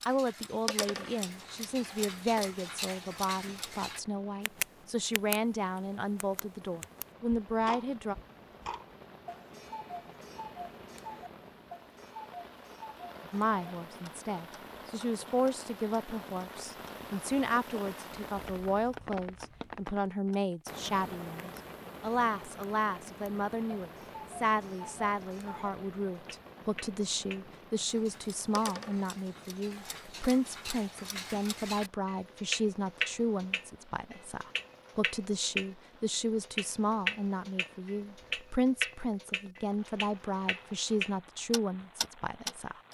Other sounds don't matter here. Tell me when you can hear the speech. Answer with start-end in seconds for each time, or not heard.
0.1-8.2, 13.2-42.8.